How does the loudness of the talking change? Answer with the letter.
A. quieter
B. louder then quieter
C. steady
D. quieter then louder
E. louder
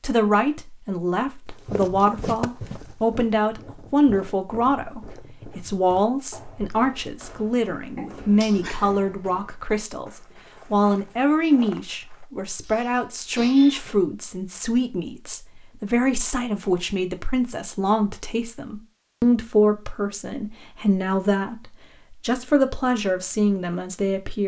C.